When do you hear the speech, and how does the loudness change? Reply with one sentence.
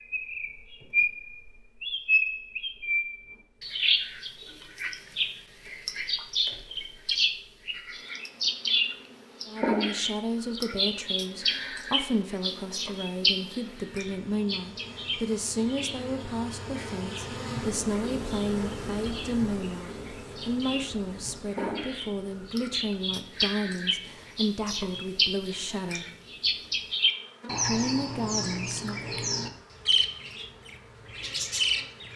The speech can be heard from 9.4 to 26.1 s, at a steady volume; and briefly from 27.6 to 29.0 s.